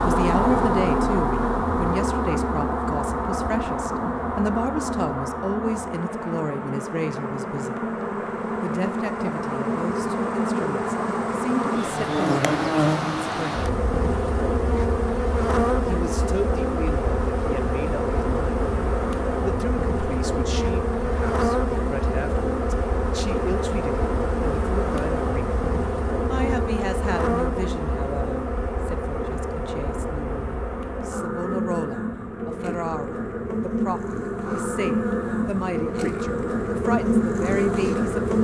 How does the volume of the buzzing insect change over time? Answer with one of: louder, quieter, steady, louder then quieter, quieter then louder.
steady.